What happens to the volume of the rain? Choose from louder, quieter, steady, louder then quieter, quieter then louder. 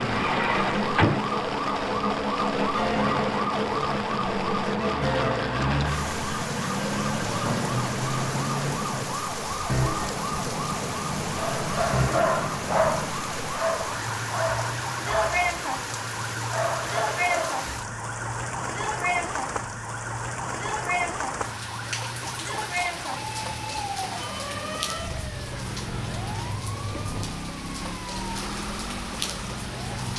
steady.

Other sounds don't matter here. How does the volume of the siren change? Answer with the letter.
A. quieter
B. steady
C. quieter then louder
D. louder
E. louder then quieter
A.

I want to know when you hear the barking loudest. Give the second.
13 s.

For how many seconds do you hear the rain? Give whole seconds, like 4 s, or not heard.
30 s.